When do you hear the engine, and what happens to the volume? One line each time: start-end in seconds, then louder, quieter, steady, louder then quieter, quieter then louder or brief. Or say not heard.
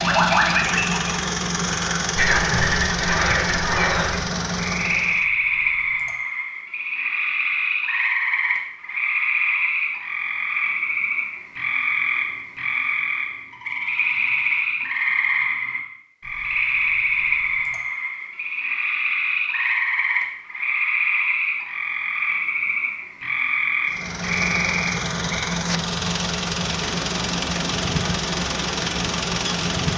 0.0-5.2 steady
23.9-29.9 steady.